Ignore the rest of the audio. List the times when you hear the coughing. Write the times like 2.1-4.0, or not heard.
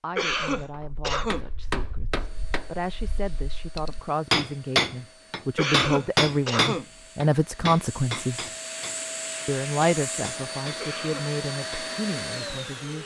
0.1-1.4, 5.5-6.8, 10.8-11.3.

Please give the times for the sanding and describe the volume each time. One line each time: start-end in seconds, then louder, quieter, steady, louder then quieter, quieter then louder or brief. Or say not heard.
not heard.